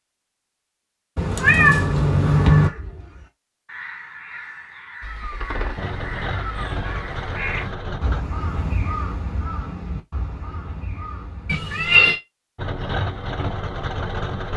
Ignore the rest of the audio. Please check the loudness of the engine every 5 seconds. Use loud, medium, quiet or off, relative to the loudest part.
off, loud, loud.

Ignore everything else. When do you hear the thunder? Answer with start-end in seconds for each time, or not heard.
not heard.